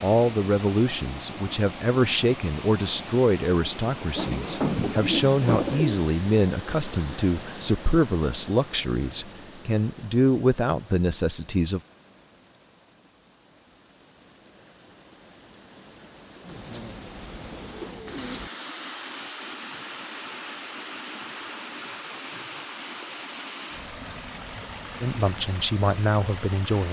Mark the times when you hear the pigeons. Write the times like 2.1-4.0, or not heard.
4.2-6.0, 16.4-18.5.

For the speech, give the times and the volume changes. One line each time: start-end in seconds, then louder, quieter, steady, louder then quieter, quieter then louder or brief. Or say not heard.
0.0-11.8 steady
25.0-26.8 brief.